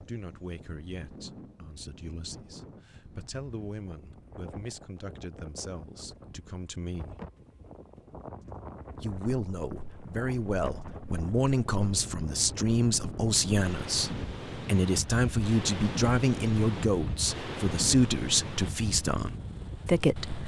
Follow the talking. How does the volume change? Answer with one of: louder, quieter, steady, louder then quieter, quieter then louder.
louder.